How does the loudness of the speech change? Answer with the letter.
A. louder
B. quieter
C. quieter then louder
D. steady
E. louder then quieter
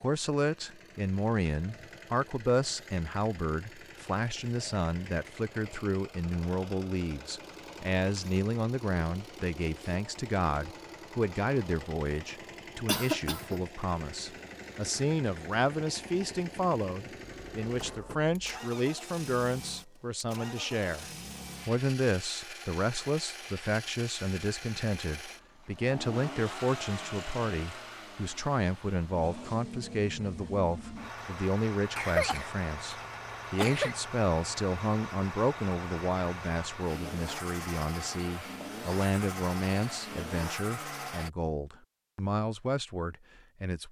D.